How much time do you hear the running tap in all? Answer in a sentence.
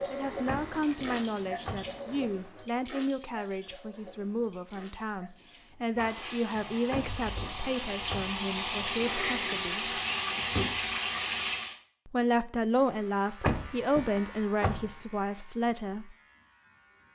You can hear the running tap for 12 seconds altogether.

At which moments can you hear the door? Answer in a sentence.
The door can be heard from 0.5 to 1.9 s, from 6.9 to 8.4 s and from 13.4 to 14.9 s.